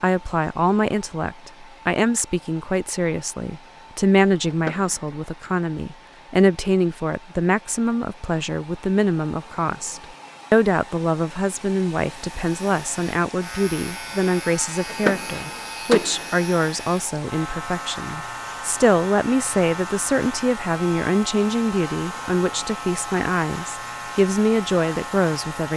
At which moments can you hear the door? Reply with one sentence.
You can hear the door from 4.5 to 5.2 s and from 14.8 to 16.3 s.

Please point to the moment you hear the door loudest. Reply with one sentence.
The volume of the door peaks at 15 seconds.